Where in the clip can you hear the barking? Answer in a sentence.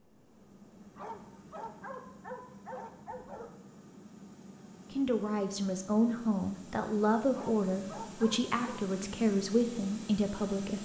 The barking can be heard from 0.9 to 3.5 s and from 7.3 to 8.8 s.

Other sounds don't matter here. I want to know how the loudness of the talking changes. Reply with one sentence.
The volume of the talking stays about the same.